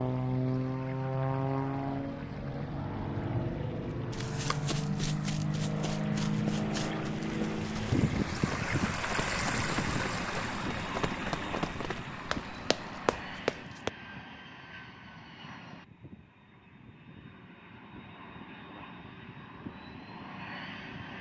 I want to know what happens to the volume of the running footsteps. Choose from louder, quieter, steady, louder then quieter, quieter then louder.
louder.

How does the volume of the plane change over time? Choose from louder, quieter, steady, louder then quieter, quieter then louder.
quieter.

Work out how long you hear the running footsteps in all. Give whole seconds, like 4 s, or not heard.
10 s.